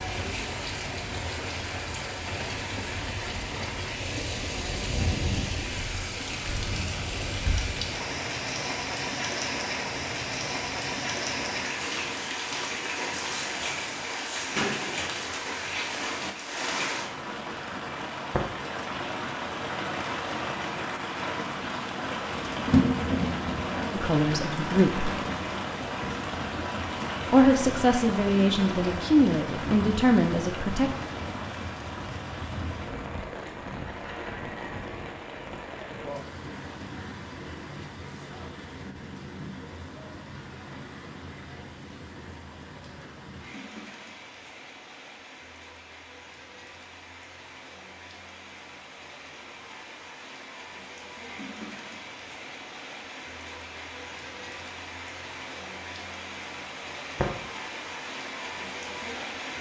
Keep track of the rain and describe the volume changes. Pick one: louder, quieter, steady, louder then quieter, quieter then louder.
quieter.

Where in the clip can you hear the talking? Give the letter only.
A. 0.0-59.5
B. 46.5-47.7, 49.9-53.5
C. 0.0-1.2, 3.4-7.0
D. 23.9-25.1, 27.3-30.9
D.